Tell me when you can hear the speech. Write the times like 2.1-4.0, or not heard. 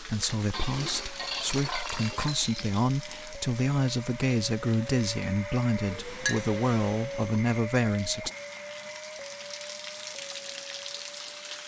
0.0-8.3.